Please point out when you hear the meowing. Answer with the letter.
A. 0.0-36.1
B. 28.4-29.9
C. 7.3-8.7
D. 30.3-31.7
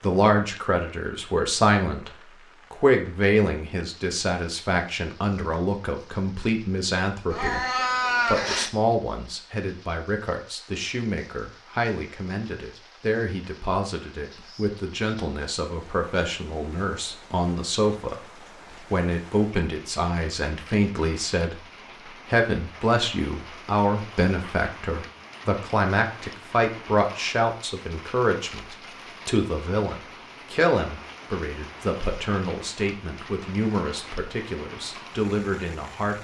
C.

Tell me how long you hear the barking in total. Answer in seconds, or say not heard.
not heard.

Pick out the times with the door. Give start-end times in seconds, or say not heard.
not heard.